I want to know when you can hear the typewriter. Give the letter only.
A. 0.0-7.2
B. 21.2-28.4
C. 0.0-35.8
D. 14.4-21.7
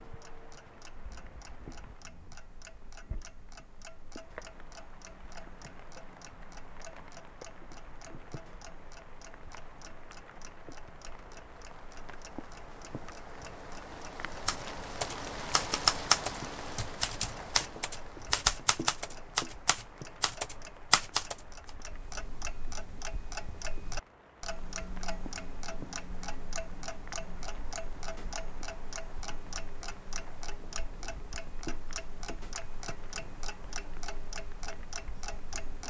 D.